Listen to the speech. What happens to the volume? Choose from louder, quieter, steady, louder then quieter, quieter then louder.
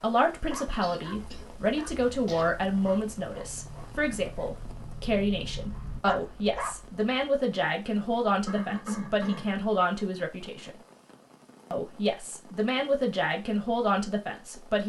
steady.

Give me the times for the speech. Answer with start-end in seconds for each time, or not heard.
0.0-10.7, 11.7-14.8.